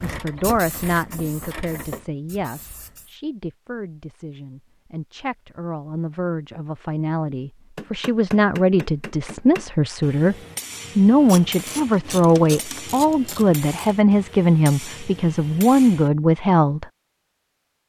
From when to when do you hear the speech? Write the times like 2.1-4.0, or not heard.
0.0-10.3, 10.9-16.9.